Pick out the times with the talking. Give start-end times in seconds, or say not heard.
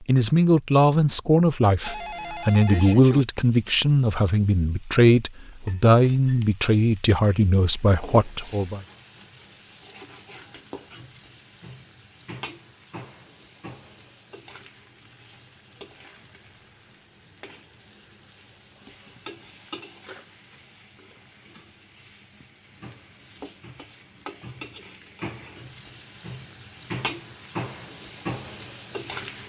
0.1-8.8.